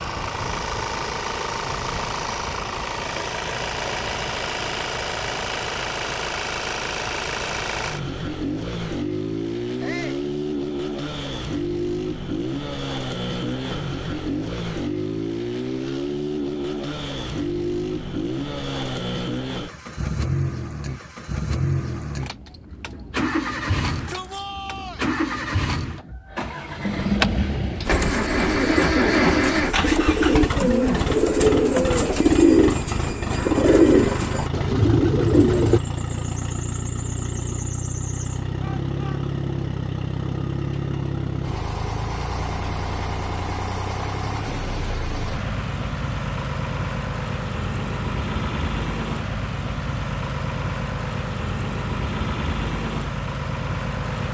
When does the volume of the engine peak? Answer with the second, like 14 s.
29 s.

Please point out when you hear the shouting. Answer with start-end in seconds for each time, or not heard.
9.8-10.2, 23.9-25.0, 38.6-39.2.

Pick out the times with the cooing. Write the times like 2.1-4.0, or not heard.
27.9-35.8.